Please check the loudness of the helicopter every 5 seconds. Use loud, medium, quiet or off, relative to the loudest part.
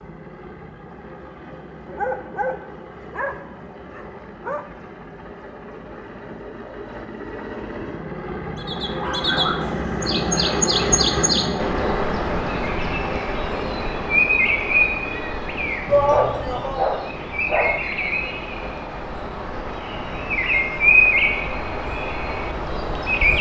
quiet, medium, loud, quiet, quiet.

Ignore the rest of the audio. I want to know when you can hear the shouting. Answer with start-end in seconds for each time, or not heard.
15.8-16.9.